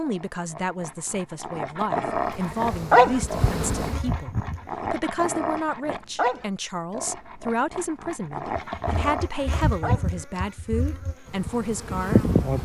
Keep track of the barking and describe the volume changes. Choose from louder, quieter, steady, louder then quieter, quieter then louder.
louder then quieter.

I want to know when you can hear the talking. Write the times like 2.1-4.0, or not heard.
0.0-12.3.